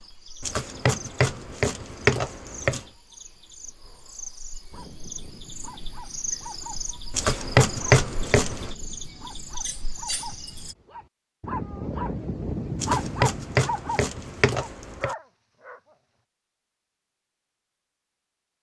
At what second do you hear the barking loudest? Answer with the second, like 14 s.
13 s.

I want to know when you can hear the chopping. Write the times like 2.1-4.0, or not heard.
0.4-2.9, 7.1-8.8, 12.8-15.1.